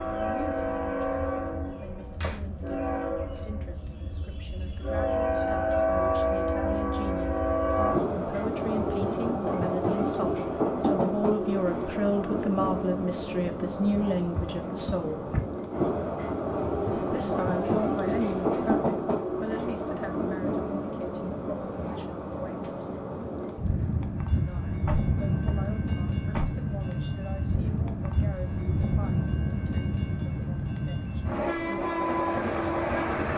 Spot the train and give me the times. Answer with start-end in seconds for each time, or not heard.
0.0-33.3.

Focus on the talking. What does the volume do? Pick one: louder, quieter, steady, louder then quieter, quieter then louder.
louder then quieter.